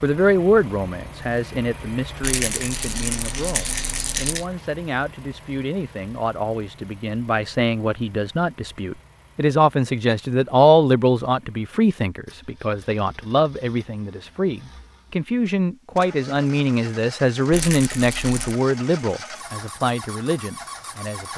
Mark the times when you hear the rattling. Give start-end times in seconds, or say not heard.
2.2-4.5, 17.5-18.6.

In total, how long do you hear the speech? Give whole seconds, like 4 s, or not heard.
21 s.